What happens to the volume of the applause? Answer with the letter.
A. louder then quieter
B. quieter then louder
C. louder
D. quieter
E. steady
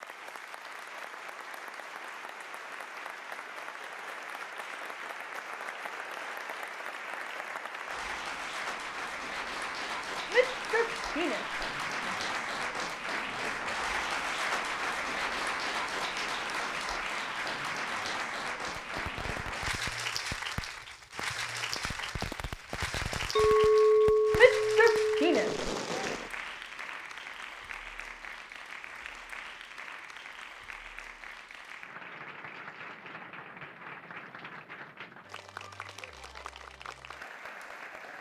A.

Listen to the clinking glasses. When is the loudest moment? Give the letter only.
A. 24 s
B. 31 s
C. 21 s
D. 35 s
A.